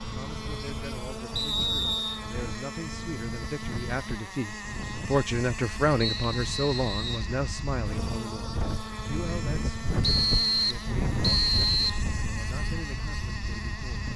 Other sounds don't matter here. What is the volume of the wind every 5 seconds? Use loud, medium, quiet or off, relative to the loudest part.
medium, loud, loud.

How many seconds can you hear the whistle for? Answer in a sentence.
The whistle can be heard for 4 seconds in total.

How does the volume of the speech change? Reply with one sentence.
The volume of the speech goes up, then down.